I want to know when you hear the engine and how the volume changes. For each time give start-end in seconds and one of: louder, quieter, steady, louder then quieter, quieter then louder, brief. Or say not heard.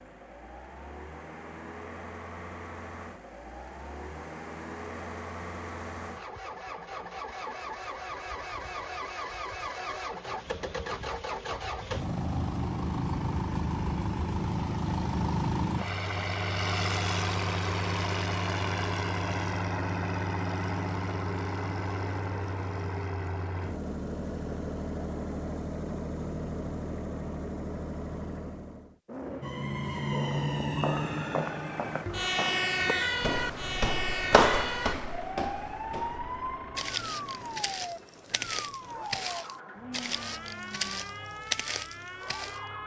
0.0-42.8 louder then quieter.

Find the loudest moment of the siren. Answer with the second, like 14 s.
33 s.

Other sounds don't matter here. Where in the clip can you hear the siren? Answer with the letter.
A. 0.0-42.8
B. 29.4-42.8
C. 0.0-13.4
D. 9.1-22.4
B.